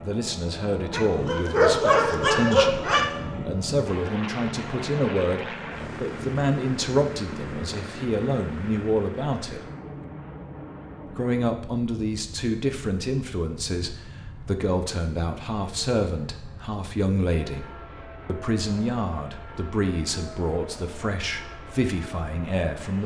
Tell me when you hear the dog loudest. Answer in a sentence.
The loudest moment of the dog is at 2 seconds.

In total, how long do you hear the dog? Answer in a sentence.
You can hear the dog for 2 seconds altogether.